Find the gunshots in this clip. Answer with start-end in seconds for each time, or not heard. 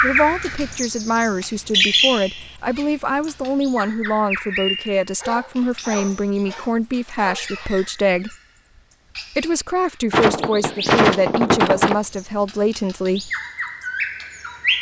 10.1-12.0.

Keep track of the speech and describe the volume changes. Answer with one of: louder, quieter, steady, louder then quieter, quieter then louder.
steady.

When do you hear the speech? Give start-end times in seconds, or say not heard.
0.0-8.3, 9.3-13.3.